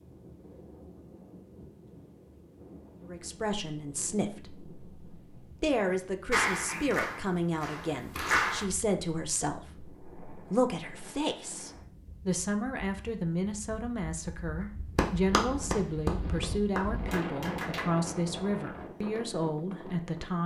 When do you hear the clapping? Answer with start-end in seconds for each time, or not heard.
6.3-8.7, 14.6-17.9.